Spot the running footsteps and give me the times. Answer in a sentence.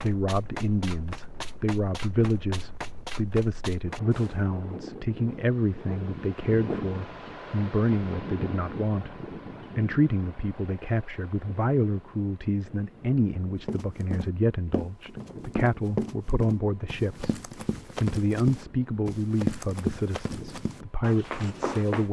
The running footsteps can be heard from 0.0 to 4.5 s and from 13.7 to 22.0 s.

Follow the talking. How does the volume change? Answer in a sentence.
The loudness of the talking stays about the same.